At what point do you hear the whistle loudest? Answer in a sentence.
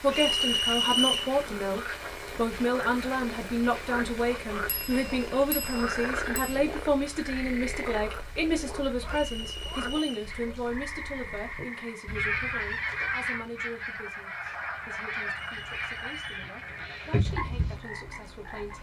The volume of the whistle peaks at 1 second.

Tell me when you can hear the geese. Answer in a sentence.
You can hear the geese from 10.2 to 17.8 s.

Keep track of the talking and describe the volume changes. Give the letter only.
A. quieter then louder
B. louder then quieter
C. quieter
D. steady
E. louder
C.